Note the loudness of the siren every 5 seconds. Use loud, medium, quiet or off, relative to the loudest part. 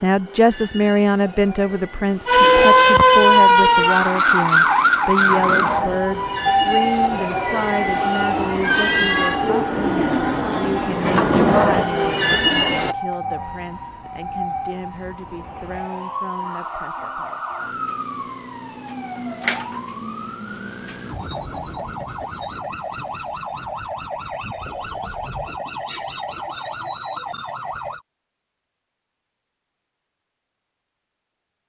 loud, medium, quiet, quiet, quiet, quiet, off.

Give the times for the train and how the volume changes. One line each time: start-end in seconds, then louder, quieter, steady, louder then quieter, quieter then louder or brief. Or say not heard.
0.0-12.9 louder.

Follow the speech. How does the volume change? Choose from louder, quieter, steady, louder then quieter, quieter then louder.
quieter.